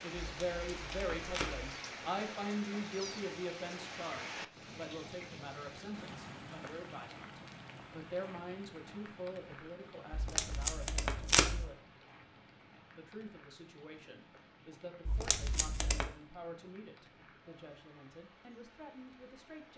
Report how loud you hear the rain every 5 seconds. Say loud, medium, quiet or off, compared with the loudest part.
loud, medium, quiet, quiet.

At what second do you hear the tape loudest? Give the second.
11 s.